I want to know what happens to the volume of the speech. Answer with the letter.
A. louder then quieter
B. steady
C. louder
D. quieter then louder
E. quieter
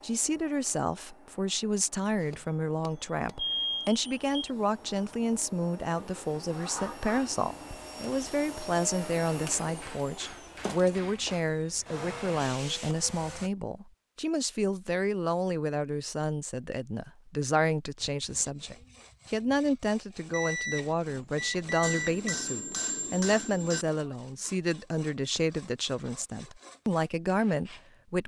B.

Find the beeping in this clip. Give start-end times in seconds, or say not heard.
3.4-4.3, 20.3-22.4.